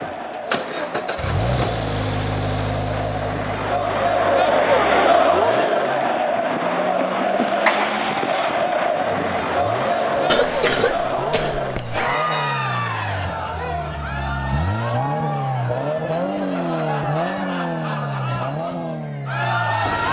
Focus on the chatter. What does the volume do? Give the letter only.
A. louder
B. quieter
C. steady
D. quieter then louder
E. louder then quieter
E.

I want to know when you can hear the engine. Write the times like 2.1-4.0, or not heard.
0.0-6.2, 8.9-20.0.